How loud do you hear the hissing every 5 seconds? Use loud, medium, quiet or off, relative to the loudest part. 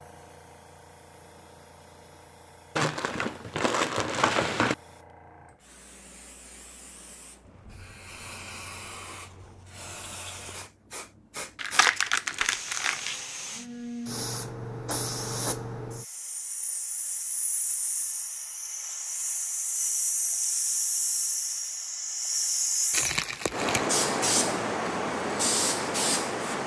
quiet, quiet, medium, medium, loud, loud.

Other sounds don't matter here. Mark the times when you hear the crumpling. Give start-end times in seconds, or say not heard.
2.8-4.8, 11.6-13.2, 22.9-23.9.